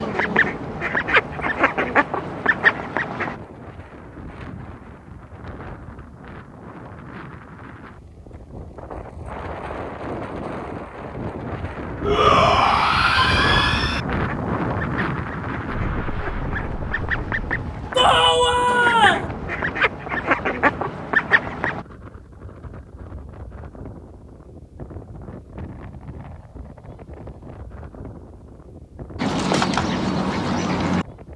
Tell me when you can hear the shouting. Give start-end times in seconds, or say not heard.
12.0-14.0, 17.9-19.3.